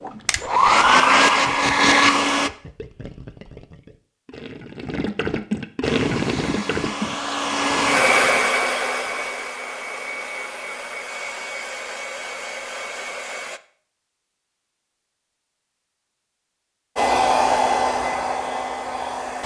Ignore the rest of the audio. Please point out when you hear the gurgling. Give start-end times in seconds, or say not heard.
0.1-8.6.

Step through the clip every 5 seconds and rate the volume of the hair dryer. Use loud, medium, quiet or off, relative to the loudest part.
loud, medium, quiet, medium.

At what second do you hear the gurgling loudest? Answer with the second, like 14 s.
6 s.